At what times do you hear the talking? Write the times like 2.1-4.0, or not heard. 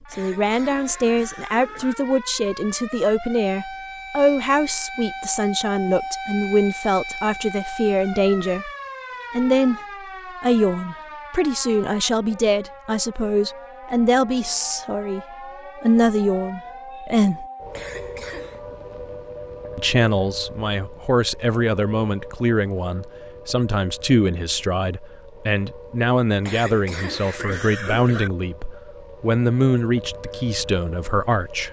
0.1-8.7, 9.3-9.8, 10.4-15.2, 15.8-17.4, 19.8-31.6.